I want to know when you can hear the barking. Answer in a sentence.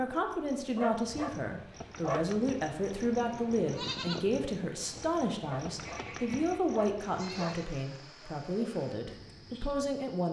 You can hear the barking from 0.8 to 2.5 s and from 5.5 to 7.6 s.